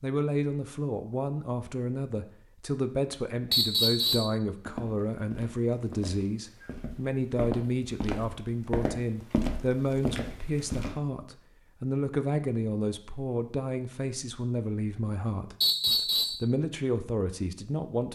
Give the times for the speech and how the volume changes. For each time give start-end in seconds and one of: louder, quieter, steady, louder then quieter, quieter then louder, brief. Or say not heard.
0.0-18.0 steady.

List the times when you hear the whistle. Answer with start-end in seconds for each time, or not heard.
3.5-4.3, 15.6-16.4.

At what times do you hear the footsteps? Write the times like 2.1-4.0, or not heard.
4.6-10.9.